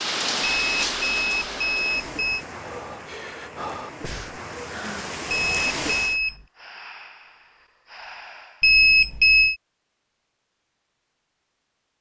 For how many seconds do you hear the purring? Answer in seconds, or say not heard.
not heard.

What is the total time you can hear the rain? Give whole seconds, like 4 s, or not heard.
6 s.